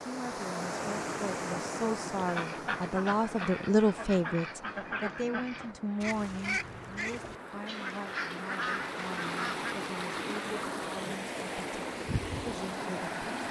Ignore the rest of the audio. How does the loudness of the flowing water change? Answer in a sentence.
The loudness of the flowing water goes down, then up.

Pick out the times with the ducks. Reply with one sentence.
You can hear the ducks from 2.1 to 9.7 s.